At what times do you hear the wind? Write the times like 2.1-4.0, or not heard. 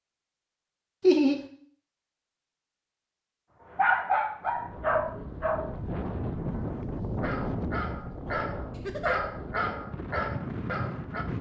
4.4-11.3.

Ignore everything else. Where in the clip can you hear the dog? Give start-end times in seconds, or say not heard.
3.6-11.2.